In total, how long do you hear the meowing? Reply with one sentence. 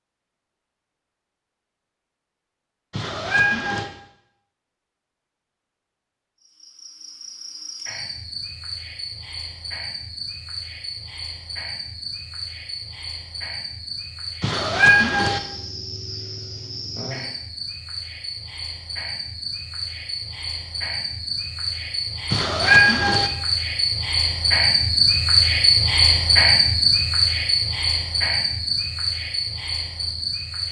The meowing can be heard for 3 seconds in total.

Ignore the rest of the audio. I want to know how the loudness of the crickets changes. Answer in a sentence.
The volume of the crickets goes up.